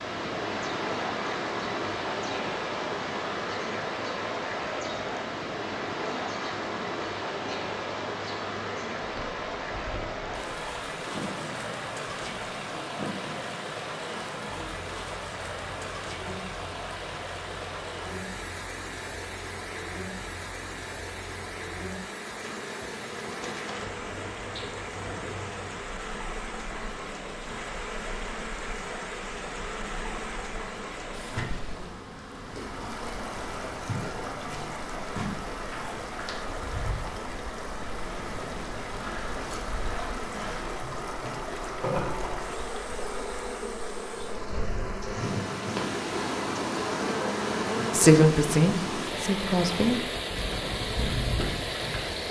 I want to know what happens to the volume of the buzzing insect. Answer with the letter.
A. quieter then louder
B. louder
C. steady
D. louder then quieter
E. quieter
B.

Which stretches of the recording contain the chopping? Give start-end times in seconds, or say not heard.
not heard.